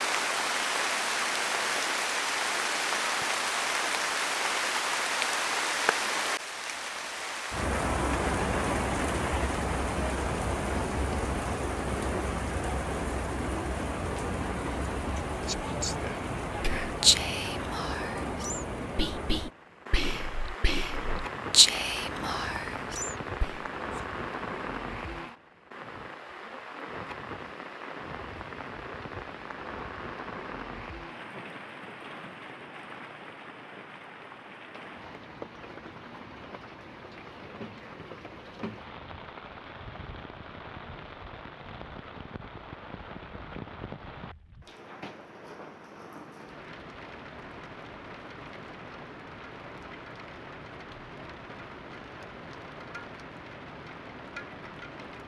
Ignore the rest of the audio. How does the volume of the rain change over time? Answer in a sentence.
The volume of the rain goes down.